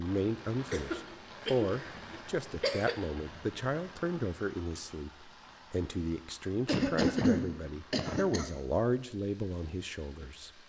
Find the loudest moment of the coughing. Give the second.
7 s.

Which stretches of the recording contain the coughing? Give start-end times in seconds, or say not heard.
0.7-3.0, 6.7-8.5.